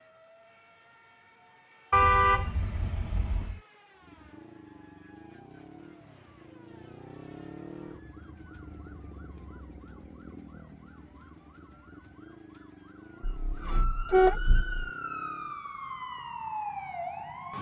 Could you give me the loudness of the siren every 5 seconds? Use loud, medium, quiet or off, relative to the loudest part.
quiet, quiet, medium, loud.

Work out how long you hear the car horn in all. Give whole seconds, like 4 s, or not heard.
3 s.